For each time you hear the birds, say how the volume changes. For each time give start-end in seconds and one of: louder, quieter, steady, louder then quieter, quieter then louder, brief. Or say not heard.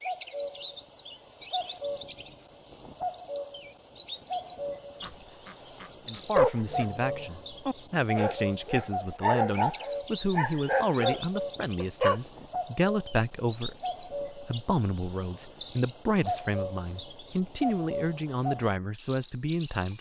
0.0-19.9 steady.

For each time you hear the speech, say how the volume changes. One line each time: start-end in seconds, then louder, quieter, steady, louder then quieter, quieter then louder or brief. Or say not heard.
6.0-19.9 steady.